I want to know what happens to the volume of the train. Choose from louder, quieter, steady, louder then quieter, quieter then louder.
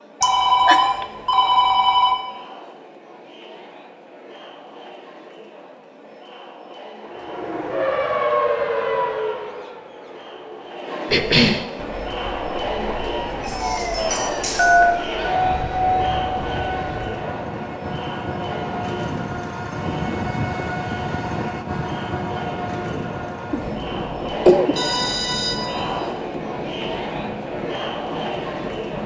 louder then quieter.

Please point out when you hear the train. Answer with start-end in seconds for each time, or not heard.
11.8-29.0.